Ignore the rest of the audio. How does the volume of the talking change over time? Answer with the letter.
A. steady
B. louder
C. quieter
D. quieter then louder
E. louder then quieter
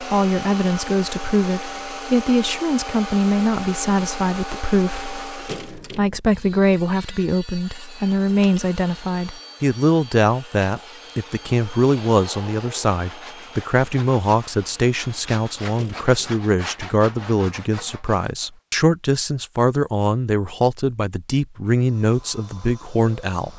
A.